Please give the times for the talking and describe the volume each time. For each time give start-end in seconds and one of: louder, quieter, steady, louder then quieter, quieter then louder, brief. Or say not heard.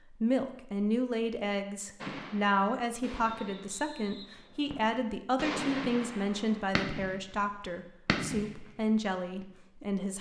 0.1-10.1 steady.